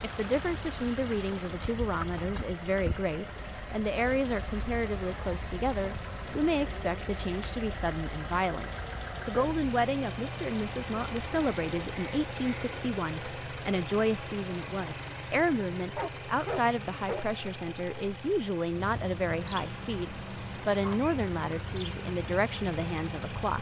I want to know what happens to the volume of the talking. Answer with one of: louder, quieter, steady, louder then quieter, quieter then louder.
steady.